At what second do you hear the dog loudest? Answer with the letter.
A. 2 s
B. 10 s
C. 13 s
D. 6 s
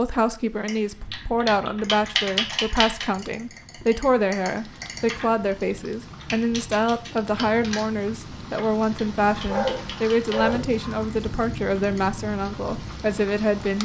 B.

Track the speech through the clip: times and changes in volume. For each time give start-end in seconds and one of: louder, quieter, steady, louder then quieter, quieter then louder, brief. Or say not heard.
0.0-13.8 steady.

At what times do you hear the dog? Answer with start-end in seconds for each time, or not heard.
9.3-11.1.